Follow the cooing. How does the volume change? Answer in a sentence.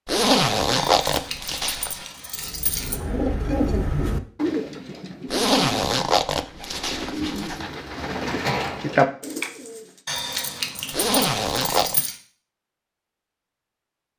The volume of the cooing goes down, then up.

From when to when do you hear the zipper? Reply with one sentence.
You can hear the zipper from 0.1 to 2.0 s, from 5.2 to 7.5 s and from 10.9 to 12.0 s.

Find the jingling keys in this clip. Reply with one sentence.
The jingling keys can be heard from 0.8 to 3.0 s and from 10.1 to 12.2 s.